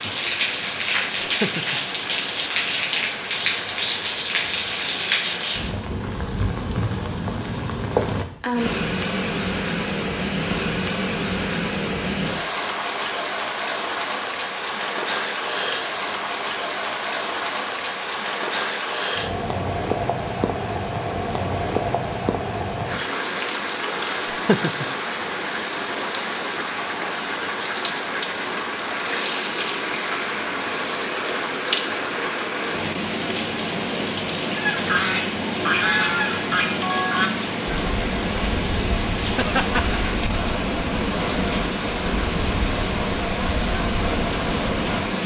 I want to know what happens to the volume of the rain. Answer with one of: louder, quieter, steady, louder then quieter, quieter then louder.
steady.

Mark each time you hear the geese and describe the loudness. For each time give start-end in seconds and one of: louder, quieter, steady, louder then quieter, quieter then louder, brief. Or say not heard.
34.5-45.0 quieter.